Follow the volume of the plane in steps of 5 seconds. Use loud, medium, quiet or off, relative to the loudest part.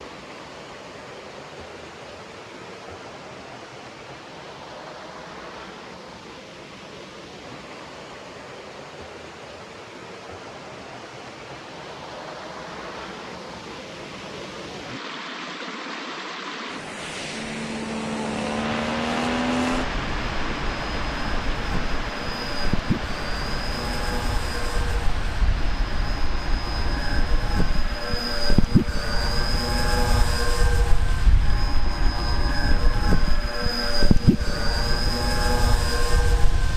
off, off, off, loud, medium, loud, loud, loud.